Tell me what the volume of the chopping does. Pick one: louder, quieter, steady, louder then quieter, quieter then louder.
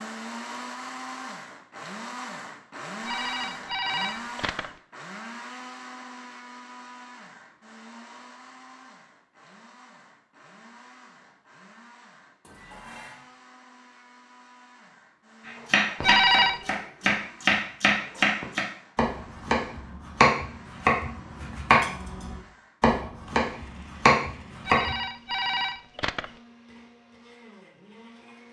steady.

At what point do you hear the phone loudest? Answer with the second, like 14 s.
16 s.